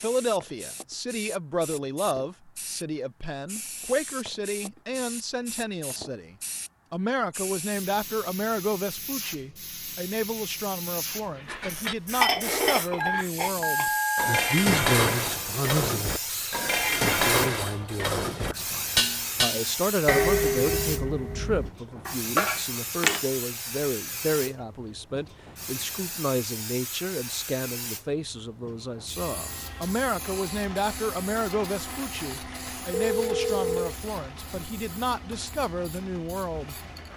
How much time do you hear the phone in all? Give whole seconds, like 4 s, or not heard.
3 s.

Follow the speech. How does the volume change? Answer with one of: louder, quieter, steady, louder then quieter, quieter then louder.
steady.